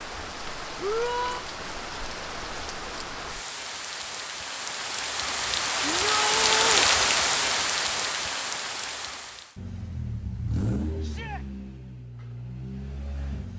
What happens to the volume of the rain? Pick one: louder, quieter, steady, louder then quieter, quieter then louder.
louder then quieter.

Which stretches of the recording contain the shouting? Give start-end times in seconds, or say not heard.
0.8-1.4, 5.8-6.9, 11.0-11.4.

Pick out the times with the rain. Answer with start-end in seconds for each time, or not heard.
0.0-9.6.